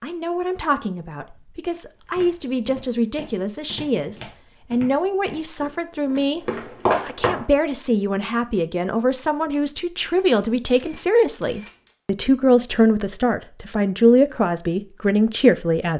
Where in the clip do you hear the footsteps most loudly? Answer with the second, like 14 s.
7 s.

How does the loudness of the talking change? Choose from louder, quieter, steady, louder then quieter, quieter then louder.
louder.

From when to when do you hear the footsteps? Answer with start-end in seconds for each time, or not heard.
1.9-7.5.